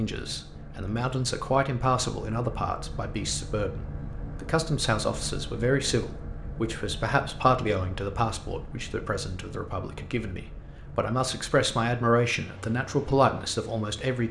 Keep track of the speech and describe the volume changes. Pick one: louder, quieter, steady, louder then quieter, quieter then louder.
quieter then louder.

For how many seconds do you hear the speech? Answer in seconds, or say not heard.
14 s.